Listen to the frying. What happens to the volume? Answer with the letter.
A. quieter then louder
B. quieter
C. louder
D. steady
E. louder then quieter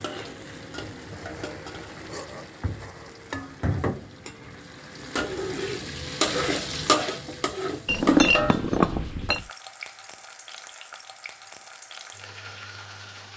E.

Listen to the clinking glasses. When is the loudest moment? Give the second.
8 s.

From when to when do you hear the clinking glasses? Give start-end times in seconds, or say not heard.
7.8-9.4.